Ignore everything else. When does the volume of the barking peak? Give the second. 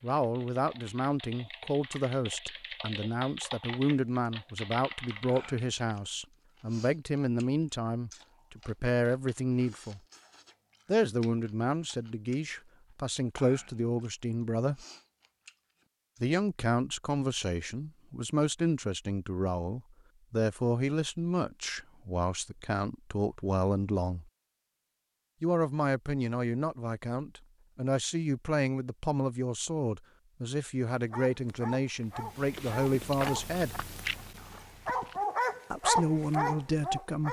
36 s.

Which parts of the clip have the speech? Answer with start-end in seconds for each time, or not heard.
0.0-10.0, 10.8-14.8, 16.2-24.2, 25.4-33.9, 35.7-37.2.